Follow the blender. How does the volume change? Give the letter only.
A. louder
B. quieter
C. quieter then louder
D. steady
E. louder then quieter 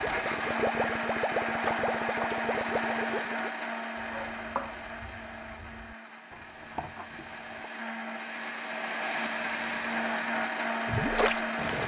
C.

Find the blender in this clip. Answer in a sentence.
You can hear the blender from 0.0 to 11.8 s.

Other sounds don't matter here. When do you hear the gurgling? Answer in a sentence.
You can hear the gurgling from 0.0 to 3.5 s and from 9.4 to 11.8 s.